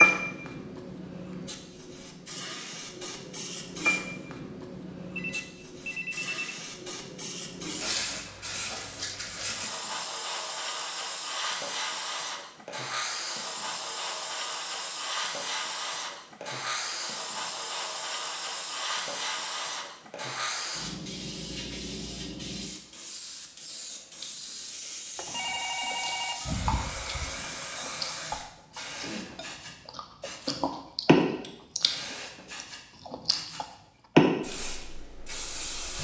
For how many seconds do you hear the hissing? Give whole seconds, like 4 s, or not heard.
36 s.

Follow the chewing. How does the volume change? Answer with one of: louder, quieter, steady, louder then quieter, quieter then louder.
louder.